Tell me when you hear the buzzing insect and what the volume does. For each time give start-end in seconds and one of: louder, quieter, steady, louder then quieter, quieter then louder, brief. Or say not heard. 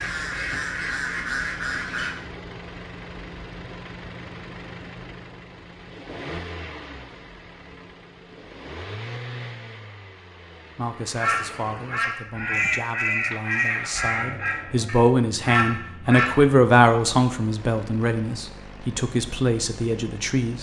not heard.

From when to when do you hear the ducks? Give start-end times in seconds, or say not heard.
0.0-2.1, 11.2-16.4.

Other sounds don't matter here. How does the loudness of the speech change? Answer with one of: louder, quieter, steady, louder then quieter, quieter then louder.
louder then quieter.